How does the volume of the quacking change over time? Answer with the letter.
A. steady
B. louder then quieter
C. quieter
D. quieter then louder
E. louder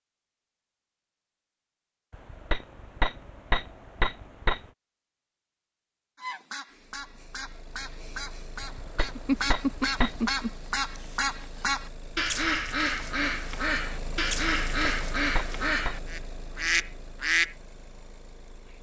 E.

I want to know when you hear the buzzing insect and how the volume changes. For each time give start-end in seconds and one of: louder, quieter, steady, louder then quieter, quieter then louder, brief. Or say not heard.
not heard.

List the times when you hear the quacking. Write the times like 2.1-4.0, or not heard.
6.2-17.6.